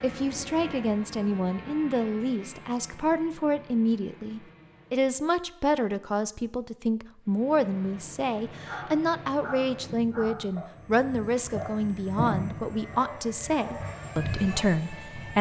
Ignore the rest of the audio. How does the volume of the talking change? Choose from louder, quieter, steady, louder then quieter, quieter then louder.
steady.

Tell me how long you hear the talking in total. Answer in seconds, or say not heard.
15 s.